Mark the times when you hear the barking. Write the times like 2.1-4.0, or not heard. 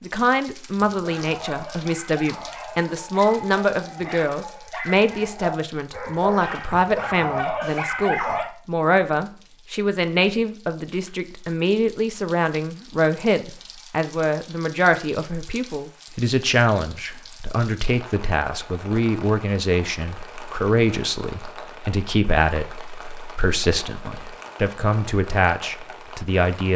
0.8-8.5.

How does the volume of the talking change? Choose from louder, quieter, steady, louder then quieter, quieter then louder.
steady.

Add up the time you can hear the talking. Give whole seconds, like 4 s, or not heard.
27 s.